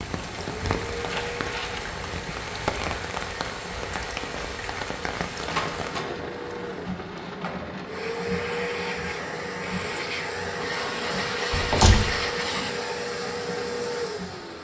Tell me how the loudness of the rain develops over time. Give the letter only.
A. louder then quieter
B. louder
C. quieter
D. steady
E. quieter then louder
C.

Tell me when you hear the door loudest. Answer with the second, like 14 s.
12 s.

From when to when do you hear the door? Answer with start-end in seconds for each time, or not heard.
0.6-1.9, 5.5-6.2, 11.5-12.1.